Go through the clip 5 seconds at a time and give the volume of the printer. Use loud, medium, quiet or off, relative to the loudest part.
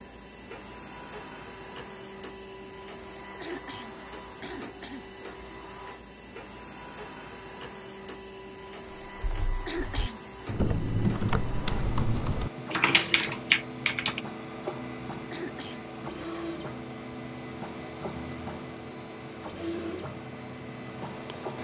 medium, medium, loud, loud, loud.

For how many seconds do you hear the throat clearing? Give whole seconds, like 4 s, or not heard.
3 s.